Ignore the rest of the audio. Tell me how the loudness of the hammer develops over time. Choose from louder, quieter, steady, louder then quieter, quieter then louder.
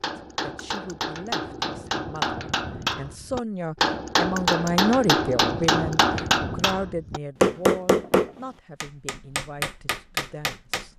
louder then quieter.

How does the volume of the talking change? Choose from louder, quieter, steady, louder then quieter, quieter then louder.
louder then quieter.